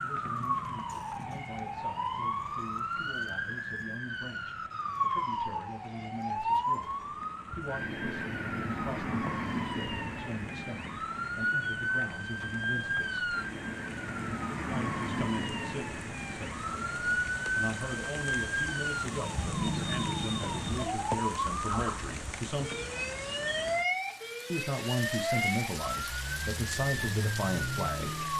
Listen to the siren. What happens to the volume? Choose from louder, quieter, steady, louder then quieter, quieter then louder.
steady.